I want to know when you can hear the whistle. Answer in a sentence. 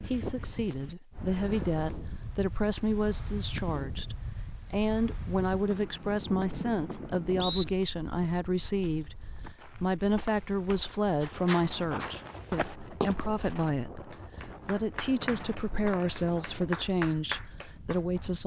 You can hear the whistle from 5.7 to 7.7 s and from 15.2 to 16.1 s.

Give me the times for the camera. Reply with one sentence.
The camera can't be heard in this clip.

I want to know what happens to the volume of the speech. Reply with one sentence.
The volume of the speech stays about the same.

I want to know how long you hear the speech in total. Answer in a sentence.
You can hear the speech for 18 seconds altogether.